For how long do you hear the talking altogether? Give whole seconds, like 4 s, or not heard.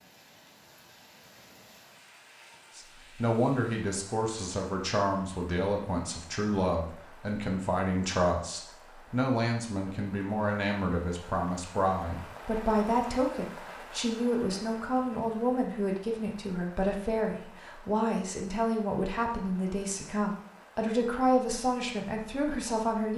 20 s.